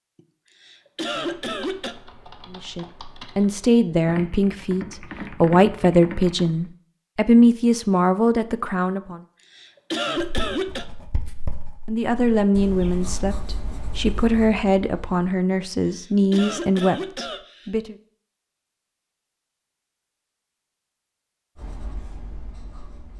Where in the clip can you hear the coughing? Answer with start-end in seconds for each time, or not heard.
0.1-1.9, 9.1-10.8, 15.5-17.7.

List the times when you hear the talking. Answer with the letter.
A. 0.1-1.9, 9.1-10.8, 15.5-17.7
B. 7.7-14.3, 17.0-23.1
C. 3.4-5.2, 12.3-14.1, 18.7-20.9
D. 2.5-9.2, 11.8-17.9
D.